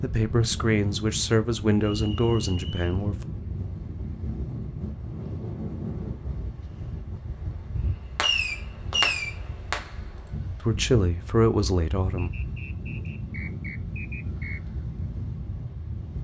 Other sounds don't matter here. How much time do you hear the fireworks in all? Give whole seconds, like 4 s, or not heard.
2 s.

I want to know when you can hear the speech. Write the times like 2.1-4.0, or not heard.
0.0-3.1, 10.6-12.3.